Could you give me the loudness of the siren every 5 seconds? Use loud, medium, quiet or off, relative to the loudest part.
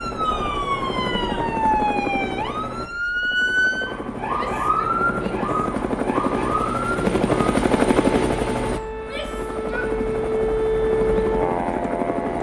loud, medium, loud.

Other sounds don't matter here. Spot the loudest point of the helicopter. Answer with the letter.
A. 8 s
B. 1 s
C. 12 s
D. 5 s
A.